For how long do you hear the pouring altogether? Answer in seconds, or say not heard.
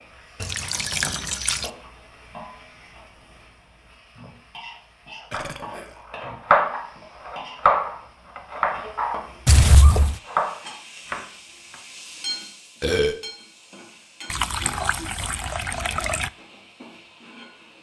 4 s.